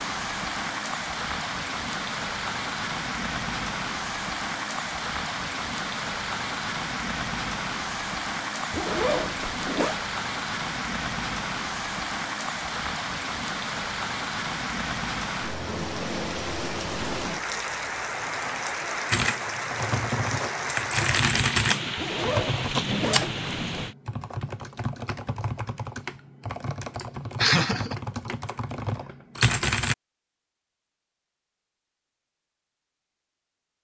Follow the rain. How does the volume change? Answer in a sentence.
The volume of the rain stays about the same.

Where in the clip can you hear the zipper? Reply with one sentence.
You can hear the zipper from 8.7 to 10.0 s and from 21.9 to 23.9 s.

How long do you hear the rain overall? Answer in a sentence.
The rain can be heard for 24 seconds in total.